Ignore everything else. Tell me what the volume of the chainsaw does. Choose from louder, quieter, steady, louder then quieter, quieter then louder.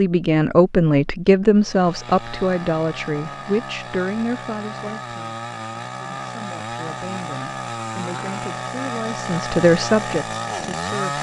louder.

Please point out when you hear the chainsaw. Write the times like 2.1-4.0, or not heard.
1.5-11.1.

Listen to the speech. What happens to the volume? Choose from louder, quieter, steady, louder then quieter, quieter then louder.
quieter then louder.